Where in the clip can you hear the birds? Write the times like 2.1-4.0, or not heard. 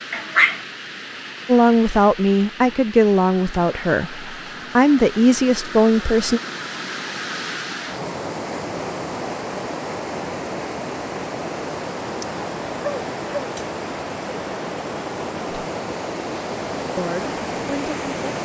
not heard.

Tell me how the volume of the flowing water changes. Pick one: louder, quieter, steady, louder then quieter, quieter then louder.
louder.